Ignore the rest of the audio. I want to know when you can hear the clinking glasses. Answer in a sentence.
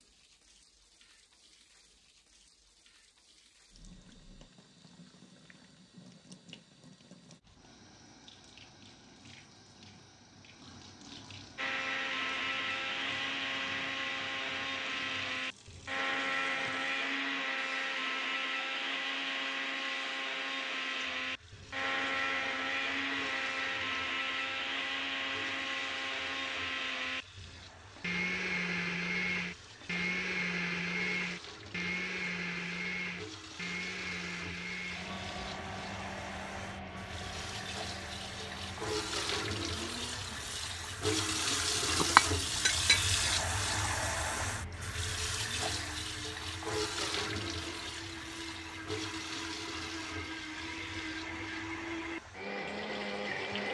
The clinking glasses can be heard from 41.7 to 43.0 s.